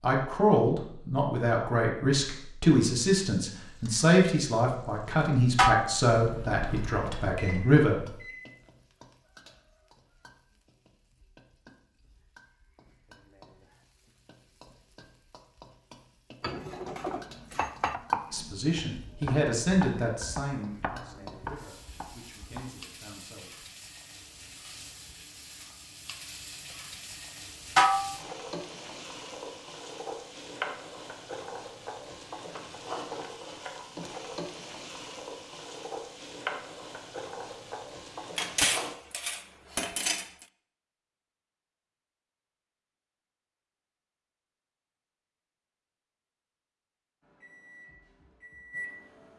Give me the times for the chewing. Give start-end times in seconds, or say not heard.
not heard.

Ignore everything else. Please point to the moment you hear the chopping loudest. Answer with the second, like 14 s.
18 s.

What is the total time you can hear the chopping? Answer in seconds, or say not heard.
6 s.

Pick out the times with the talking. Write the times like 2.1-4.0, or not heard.
0.0-8.2, 18.3-23.6.